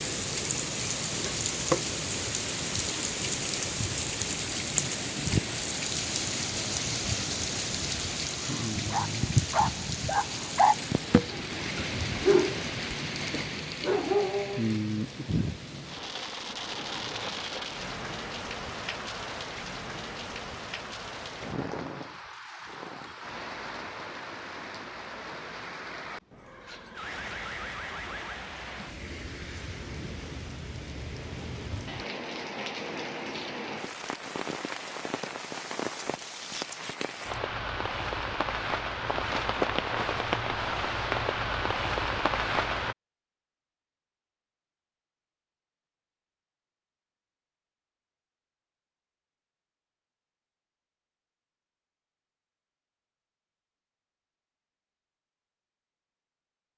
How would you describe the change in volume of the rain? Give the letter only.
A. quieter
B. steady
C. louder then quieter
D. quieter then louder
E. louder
D.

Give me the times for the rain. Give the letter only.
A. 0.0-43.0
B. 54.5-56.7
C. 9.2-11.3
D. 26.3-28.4
A.